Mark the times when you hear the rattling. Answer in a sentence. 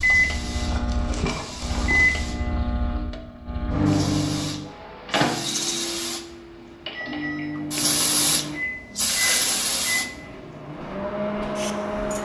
The rattling can be heard from 0.6 to 2.1 s, from 5.4 to 5.8 s and from 9.1 to 9.6 s.